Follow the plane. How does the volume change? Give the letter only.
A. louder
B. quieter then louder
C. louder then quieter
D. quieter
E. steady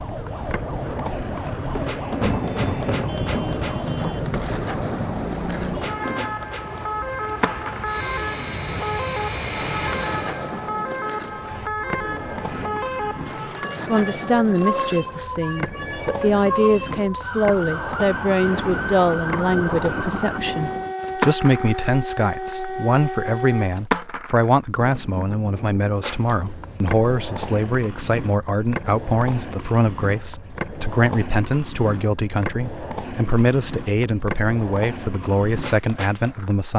A.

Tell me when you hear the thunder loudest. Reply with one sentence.
The volume of the thunder peaks at 2 seconds.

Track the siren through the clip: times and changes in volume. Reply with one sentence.
You can hear the siren from 0.0 to 23.7 s, at a steady volume.